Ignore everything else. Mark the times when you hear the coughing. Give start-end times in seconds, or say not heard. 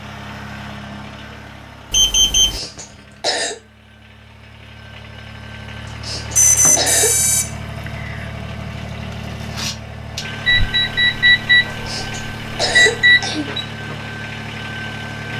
2.4-3.5, 5.8-7.2, 11.7-13.5.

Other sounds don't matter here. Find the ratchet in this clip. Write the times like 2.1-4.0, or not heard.
not heard.